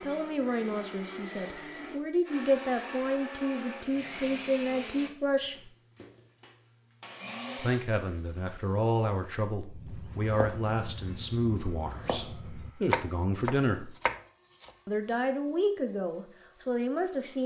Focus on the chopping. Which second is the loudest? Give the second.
13 s.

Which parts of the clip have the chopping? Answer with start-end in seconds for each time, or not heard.
9.7-14.7.